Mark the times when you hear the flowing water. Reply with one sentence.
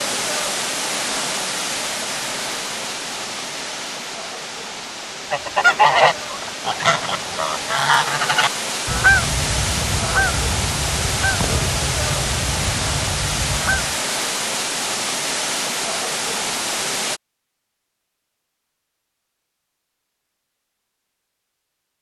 You can hear the flowing water from 0.0 to 17.2 s.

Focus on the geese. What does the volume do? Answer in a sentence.
The volume of the geese goes down.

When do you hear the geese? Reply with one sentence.
You can hear the geese from 5.3 to 13.9 s.